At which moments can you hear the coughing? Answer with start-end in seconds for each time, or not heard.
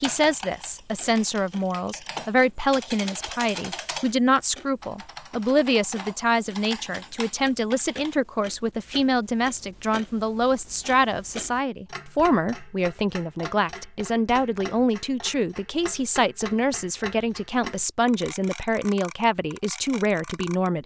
not heard.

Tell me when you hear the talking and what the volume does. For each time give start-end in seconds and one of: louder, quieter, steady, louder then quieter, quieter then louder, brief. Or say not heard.
0.0-20.8 steady.